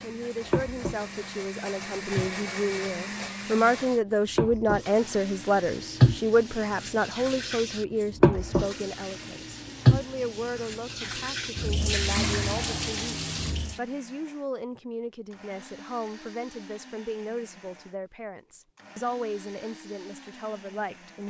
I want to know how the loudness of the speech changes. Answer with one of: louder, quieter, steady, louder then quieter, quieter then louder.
quieter.